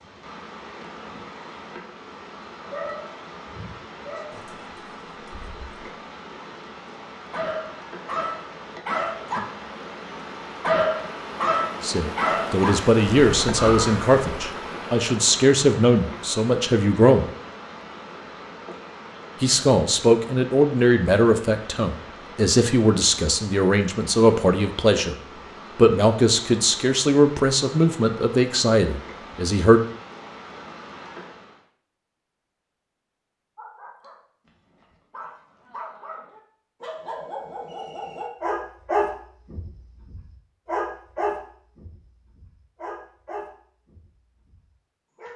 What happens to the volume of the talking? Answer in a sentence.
The loudness of the talking stays about the same.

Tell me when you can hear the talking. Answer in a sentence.
You can hear the talking from 11.8 to 17.3 s, from 19.4 to 25.1 s and from 25.8 to 29.8 s.